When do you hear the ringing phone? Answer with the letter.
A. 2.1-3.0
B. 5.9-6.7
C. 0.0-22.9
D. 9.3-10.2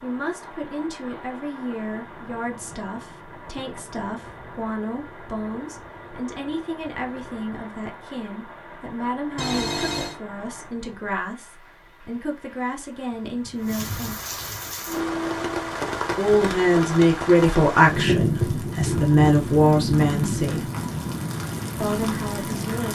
D.